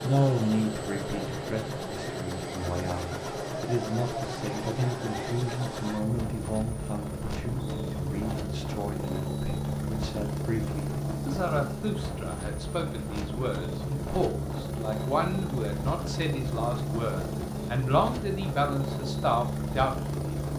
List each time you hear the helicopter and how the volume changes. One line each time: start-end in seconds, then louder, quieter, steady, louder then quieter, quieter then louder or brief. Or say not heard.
0.0-20.5 steady.